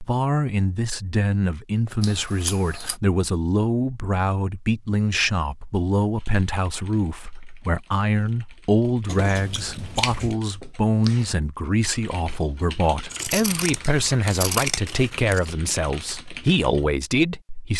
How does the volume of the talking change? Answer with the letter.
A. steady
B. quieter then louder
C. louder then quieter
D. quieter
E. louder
A.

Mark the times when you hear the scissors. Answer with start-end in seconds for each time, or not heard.
2.0-3.0, 9.1-10.3, 13.1-15.4.